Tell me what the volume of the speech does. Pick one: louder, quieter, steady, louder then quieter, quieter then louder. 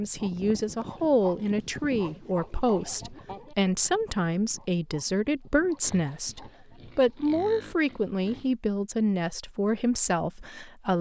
steady.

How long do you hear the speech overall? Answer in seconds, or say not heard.
11 s.